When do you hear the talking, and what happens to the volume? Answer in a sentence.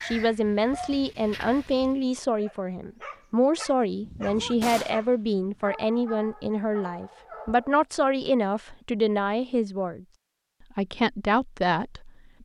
You can hear the talking from 0.0 to 10.1 s, at a steady volume; and briefly from 10.8 to 12.3 s.